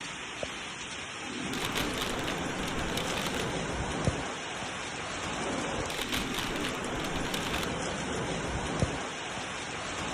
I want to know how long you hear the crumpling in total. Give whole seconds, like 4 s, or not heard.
4 s.